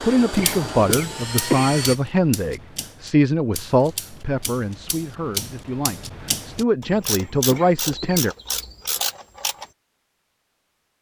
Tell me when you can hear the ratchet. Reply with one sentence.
You can hear the ratchet from 0.3 to 9.7 s.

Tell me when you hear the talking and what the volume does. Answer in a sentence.
The talking can be heard from 0.0 to 8.3 s, getting quieter then louder.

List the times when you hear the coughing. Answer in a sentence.
The coughing can be heard from 0.1 to 1.8 s and from 7.2 to 8.2 s.